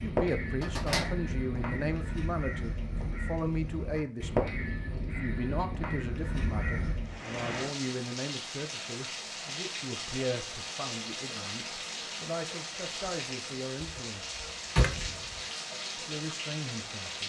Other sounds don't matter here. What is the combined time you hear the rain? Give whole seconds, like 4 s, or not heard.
10 s.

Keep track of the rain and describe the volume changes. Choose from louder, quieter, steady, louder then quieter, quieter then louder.
steady.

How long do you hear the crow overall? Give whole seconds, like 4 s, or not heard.
7 s.